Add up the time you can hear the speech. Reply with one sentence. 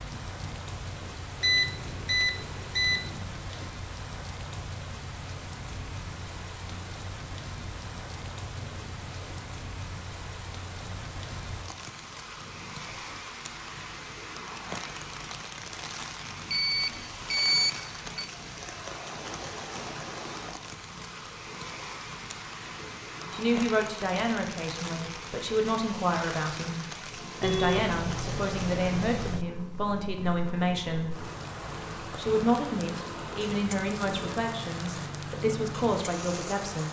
The speech can be heard for 13 seconds in total.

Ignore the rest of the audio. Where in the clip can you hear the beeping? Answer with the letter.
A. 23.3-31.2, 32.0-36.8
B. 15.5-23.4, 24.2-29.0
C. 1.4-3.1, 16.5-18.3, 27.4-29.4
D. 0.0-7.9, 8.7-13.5
C.